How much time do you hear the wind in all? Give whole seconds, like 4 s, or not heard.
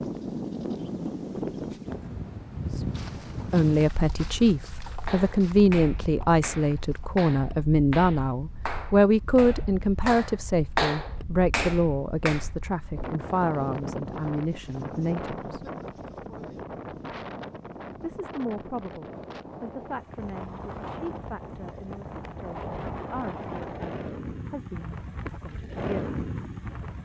27 s.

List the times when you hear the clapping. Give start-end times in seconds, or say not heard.
5.0-12.4.